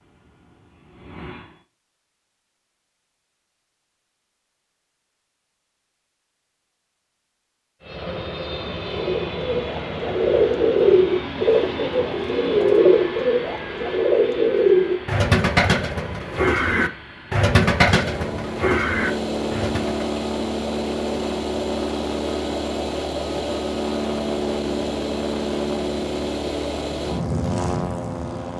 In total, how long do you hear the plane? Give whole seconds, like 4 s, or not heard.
22 s.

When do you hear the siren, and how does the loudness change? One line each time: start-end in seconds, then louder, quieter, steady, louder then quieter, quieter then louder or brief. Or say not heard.
not heard.